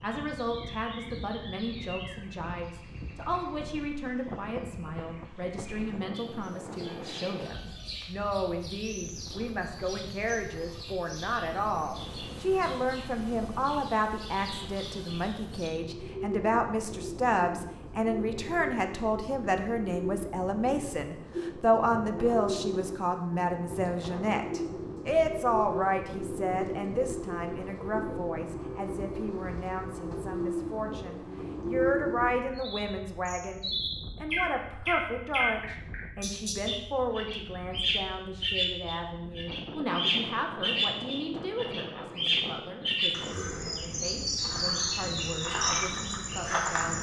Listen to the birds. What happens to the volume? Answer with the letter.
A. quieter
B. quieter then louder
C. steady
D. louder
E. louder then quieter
D.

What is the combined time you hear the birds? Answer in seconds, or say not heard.
47 s.